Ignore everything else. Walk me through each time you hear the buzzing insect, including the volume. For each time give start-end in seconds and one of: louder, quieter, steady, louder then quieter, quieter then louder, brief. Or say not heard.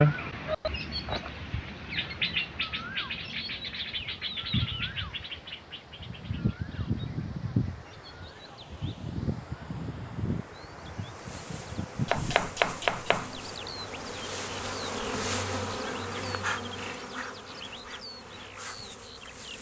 11.1-19.5 louder then quieter.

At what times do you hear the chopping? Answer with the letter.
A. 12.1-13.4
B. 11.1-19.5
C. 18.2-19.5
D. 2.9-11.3
A.